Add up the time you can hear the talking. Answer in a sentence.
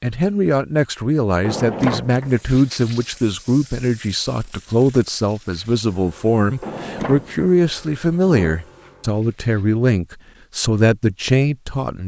You can hear the talking for 12 seconds altogether.